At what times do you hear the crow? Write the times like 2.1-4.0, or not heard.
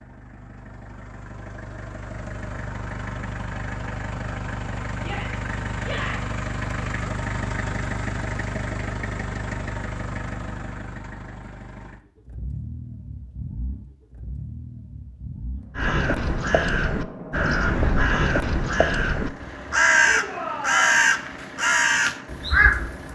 15.8-23.1.